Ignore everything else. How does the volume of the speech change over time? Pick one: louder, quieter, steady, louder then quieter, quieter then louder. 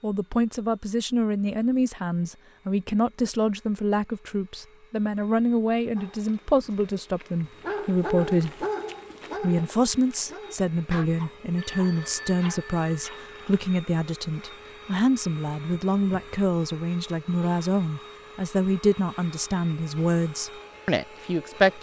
steady.